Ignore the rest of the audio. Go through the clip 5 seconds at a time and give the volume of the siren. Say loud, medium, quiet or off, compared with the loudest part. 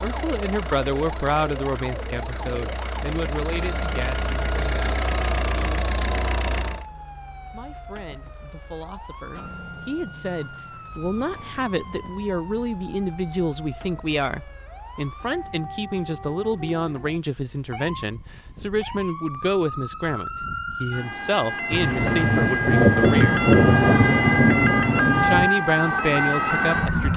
quiet, quiet, quiet, quiet, loud, loud.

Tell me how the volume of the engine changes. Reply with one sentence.
The volume of the engine goes up.